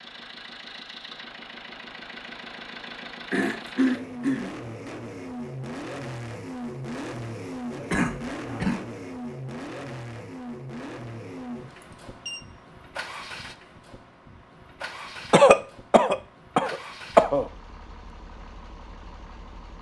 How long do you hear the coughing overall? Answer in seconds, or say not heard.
4 s.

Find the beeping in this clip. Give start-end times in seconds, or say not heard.
11.8-12.4.